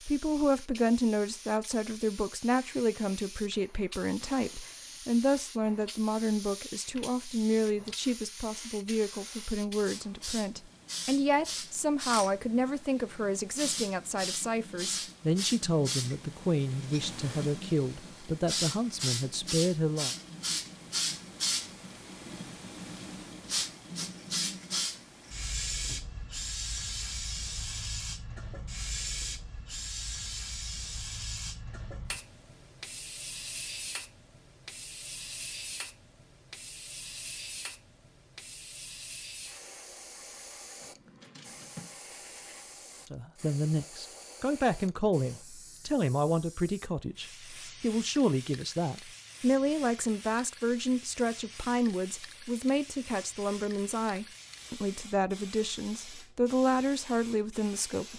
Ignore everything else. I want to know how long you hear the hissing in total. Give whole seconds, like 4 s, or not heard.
58 s.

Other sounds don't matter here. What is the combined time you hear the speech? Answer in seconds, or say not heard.
35 s.